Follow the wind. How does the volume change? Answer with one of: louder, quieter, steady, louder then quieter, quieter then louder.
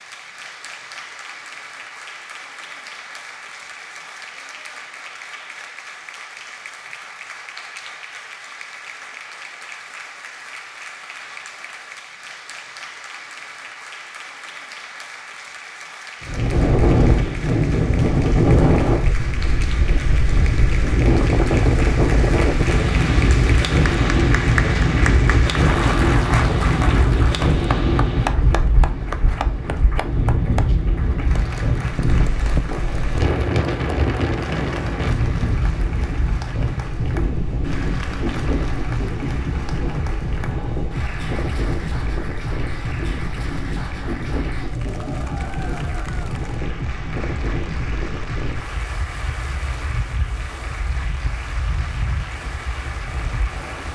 quieter.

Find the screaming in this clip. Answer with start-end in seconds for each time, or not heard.
not heard.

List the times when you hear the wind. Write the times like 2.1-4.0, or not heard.
16.2-53.9.